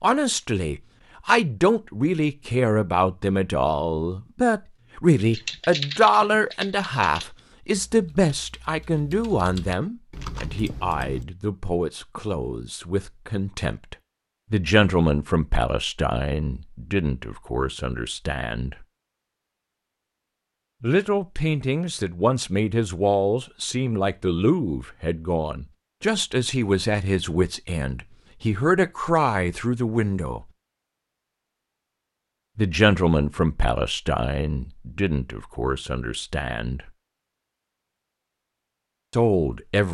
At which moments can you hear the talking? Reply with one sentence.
The talking can be heard from 0.0 to 18.9 s, from 20.8 to 30.4 s, from 32.5 to 36.9 s and from 39.1 to 39.8 s.